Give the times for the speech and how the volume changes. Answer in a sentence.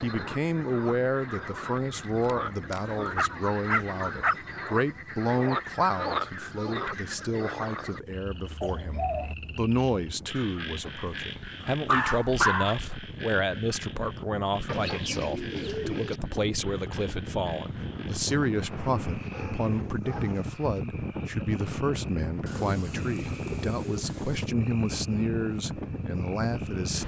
The speech can be heard from 0.0 to 27.0 s, at a steady volume.